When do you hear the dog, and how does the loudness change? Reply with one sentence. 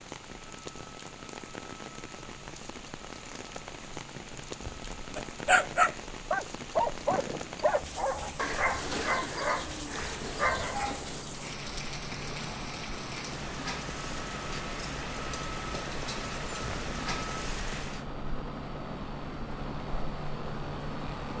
The dog can be heard from 4.7 to 11.3 s, getting quieter.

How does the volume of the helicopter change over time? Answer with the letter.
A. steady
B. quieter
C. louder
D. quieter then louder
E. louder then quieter
C.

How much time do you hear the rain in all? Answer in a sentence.
The rain can be heard for 18 seconds in total.